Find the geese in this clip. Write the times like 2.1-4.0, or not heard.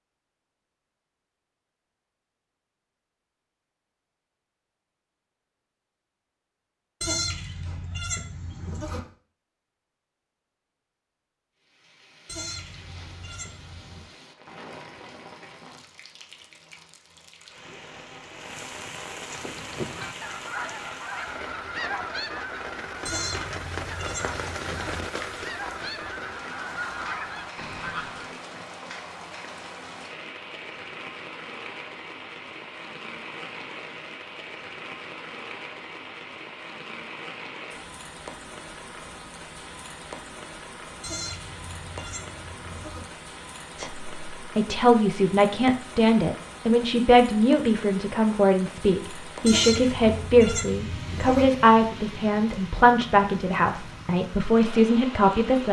19.2-28.4.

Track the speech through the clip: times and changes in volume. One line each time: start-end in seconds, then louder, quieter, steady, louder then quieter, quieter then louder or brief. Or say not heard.
43.8-55.6 steady.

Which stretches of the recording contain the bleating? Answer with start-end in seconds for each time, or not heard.
7.0-9.0, 12.2-14.1, 23.1-25.1, 41.0-43.0, 49.5-51.5.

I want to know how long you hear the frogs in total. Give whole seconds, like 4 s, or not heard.
not heard.